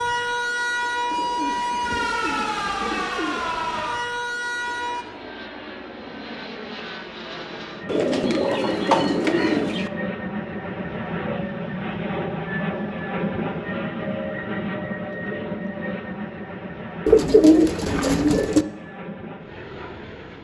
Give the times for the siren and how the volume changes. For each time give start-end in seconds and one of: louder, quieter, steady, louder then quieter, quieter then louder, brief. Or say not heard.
0.0-5.0 steady.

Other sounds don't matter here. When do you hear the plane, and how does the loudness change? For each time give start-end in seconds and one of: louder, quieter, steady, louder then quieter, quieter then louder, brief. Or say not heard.
0.0-20.3 louder then quieter.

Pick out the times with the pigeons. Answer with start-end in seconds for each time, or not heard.
1.1-3.9, 7.8-9.9, 17.1-18.6.